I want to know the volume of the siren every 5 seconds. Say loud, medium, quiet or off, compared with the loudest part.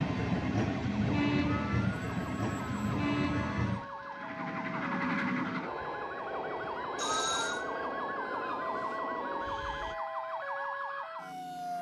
medium, loud, loud.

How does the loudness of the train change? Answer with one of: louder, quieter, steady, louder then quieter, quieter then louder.
quieter.